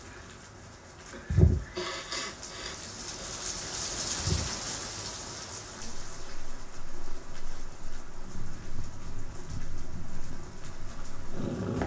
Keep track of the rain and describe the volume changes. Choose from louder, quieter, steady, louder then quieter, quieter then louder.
louder then quieter.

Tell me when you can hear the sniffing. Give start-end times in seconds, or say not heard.
1.7-3.4.